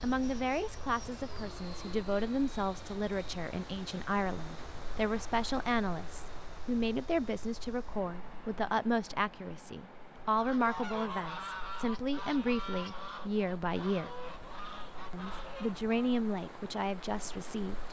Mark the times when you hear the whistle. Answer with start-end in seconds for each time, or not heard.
not heard.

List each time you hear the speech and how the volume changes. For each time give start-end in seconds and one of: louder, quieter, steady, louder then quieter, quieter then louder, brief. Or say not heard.
0.0-14.1 steady
15.1-17.8 brief.